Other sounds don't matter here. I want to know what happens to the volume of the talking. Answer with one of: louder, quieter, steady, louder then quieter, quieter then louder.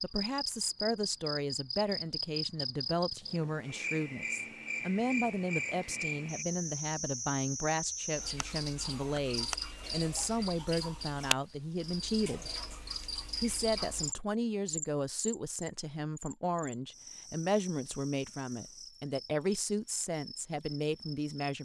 steady.